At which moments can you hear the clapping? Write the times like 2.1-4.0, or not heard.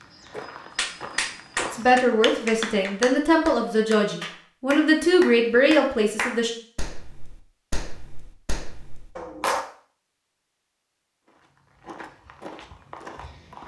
0.8-9.7.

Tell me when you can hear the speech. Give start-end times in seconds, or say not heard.
1.7-6.5.